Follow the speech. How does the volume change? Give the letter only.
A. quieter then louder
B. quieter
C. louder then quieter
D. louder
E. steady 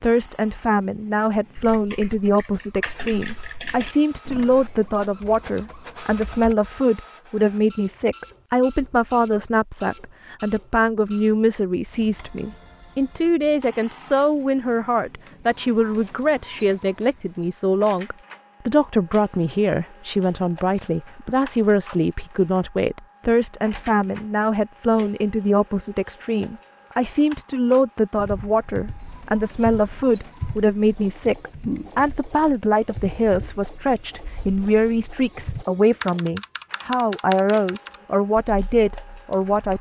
E.